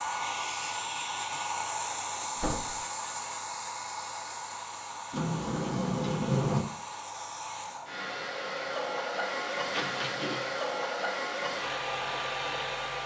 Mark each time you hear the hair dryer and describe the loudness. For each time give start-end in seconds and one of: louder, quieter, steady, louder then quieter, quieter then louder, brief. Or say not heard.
0.0-13.0 quieter then louder.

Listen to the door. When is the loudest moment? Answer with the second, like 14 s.
6 s.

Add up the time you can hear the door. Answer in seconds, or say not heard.
3 s.